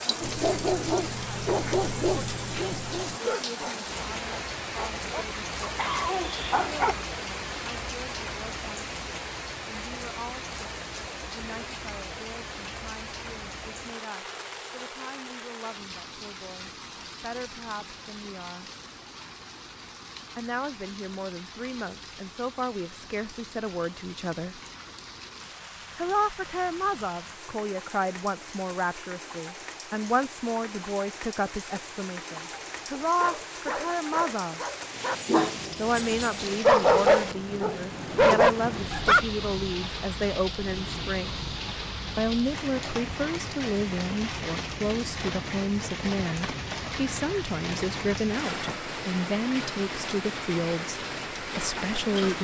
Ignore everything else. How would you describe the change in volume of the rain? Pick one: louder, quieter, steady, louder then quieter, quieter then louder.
quieter then louder.